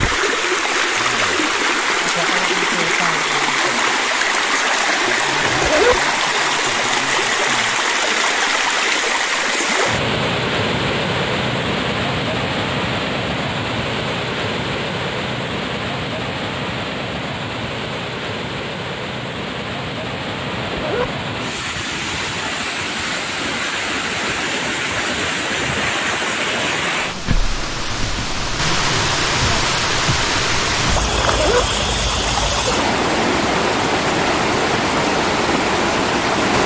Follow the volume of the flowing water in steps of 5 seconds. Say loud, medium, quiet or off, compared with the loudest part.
loud, loud, loud, medium, medium, loud, loud, loud.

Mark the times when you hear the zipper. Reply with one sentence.
The zipper can be heard from 5.4 to 6.0 s, from 20.6 to 21.1 s and from 31.2 to 31.6 s.